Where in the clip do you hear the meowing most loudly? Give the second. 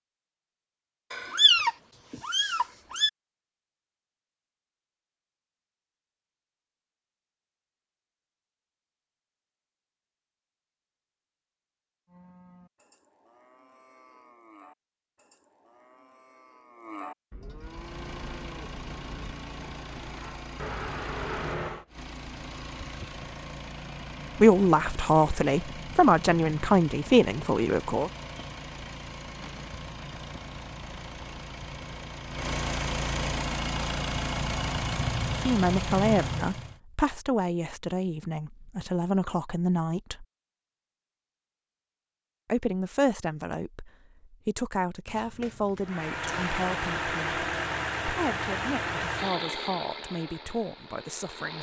2 s.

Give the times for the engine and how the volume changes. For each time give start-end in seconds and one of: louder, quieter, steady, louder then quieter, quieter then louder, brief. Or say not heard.
17.6-36.8 louder
45.9-51.5 quieter.